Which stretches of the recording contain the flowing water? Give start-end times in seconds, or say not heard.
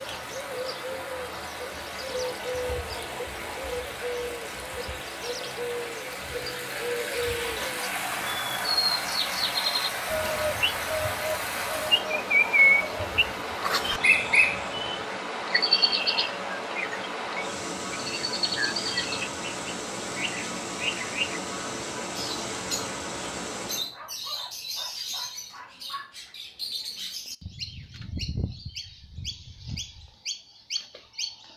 0.0-23.9.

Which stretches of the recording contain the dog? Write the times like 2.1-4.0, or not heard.
2.2-3.6, 23.8-26.4.